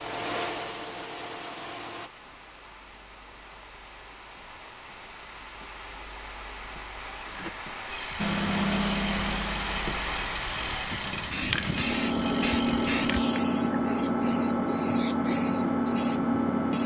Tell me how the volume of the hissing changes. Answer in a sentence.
The loudness of the hissing goes up.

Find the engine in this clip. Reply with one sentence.
The engine can be heard from 0.0 to 2.1 s and from 8.2 to 16.8 s.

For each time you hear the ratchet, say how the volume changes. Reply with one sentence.
You can hear the ratchet from 7.2 to 13.3 s, at a steady volume.